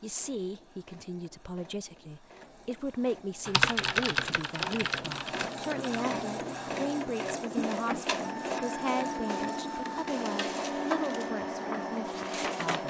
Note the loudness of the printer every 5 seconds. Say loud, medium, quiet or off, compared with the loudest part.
quiet, loud, loud.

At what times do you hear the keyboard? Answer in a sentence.
The keyboard can be heard from 3.5 to 6.0 s.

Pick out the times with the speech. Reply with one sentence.
You can hear the speech from 0.0 to 12.8 s.